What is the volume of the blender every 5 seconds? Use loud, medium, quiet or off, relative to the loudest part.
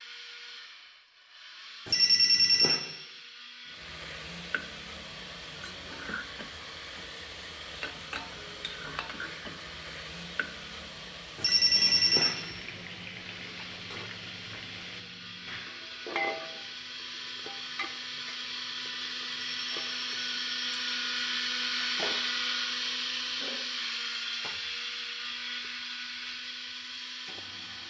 quiet, quiet, quiet, medium, loud, medium.